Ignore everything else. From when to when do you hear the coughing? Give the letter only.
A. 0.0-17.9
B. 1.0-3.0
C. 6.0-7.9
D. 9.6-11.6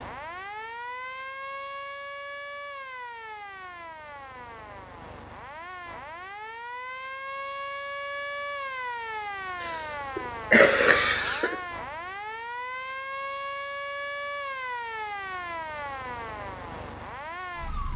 D.